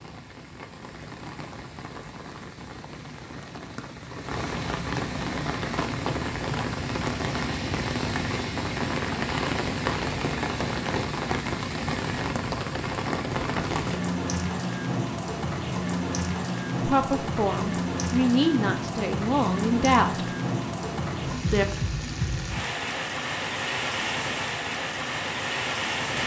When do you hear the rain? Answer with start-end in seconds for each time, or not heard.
0.0-26.2.